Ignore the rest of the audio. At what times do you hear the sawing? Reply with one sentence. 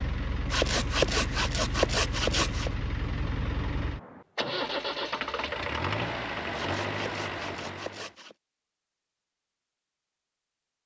You can hear the sawing from 0.5 to 2.7 s and from 6.5 to 8.3 s.